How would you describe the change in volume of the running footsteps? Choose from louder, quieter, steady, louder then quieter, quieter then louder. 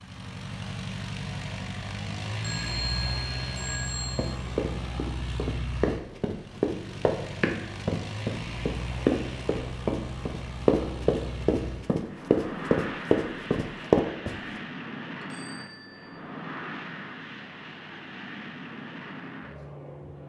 louder.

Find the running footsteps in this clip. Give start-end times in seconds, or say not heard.
4.2-14.3.